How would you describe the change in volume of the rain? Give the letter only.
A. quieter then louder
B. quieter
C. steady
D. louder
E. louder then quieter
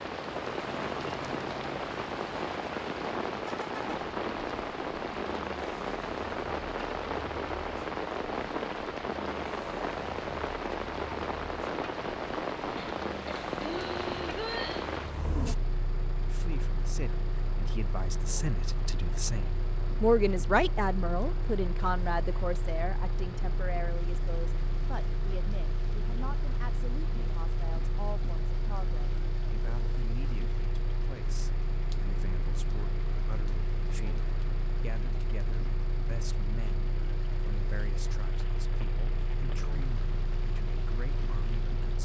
B.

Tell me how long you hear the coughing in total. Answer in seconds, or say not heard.
2 s.